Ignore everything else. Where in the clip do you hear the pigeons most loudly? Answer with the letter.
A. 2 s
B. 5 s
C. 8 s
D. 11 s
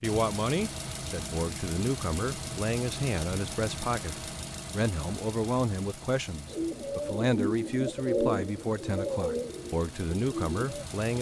C.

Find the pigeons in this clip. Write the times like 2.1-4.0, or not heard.
6.5-10.9.